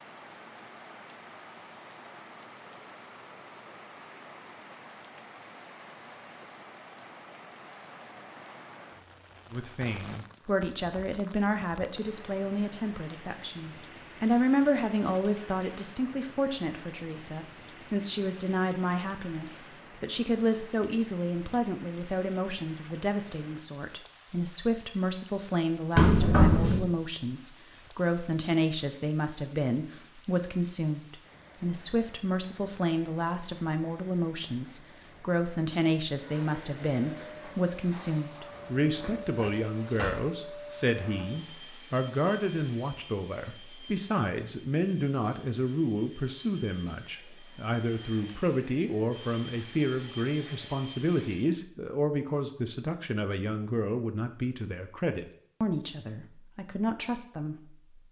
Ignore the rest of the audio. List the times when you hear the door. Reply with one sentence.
You can hear the door from 25.9 to 26.9 s and from 38.5 to 40.1 s.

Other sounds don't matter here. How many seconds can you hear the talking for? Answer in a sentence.
The talking can be heard for 48 seconds in total.